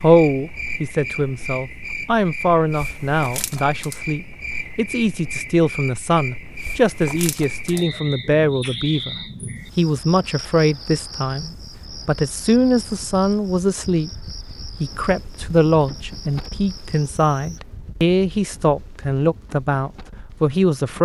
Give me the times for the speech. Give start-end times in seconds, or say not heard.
0.0-21.0.